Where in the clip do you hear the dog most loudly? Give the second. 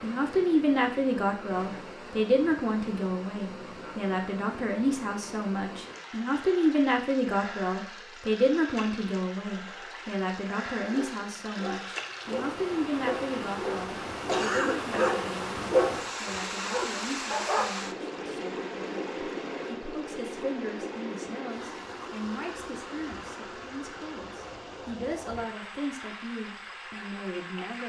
16 s.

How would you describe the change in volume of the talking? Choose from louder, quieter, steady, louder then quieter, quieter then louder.
quieter.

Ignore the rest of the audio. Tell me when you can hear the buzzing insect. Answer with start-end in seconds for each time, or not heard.
not heard.